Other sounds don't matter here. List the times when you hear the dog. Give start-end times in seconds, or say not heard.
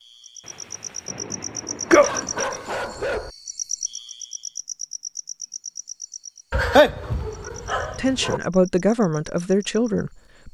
1.9-3.3, 6.5-8.4.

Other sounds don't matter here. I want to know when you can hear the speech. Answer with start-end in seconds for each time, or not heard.
8.0-10.4.